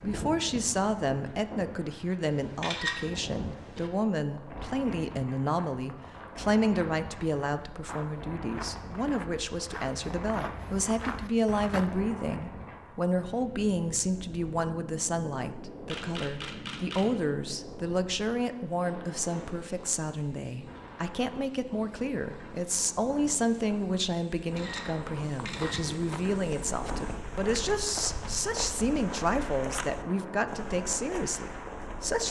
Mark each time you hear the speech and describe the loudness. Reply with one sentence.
You can hear the speech from 0.0 to 32.2 s, at a steady volume.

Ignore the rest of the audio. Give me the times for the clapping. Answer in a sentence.
You can't hear the clapping here.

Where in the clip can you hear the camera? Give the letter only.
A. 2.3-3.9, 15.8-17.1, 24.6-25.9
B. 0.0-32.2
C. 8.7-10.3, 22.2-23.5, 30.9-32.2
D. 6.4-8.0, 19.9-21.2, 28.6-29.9
A.